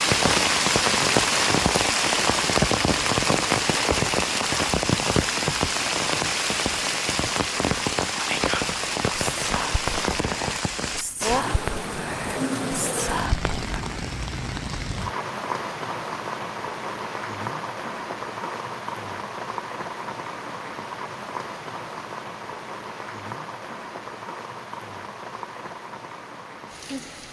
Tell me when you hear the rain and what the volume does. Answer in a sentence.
You can hear the rain from 0.0 to 27.2 s, getting quieter.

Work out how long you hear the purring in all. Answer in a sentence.
The purring can't be heard in this clip.